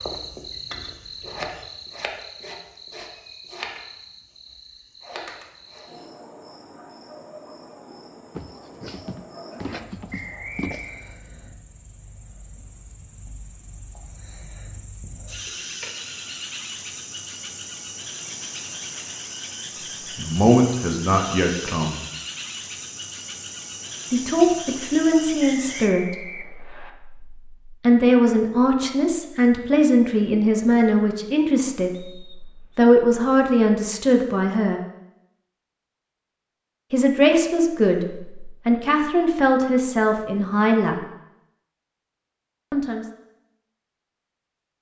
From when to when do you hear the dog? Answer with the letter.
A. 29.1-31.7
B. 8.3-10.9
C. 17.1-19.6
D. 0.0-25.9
B.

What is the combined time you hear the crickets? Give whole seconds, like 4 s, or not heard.
26 s.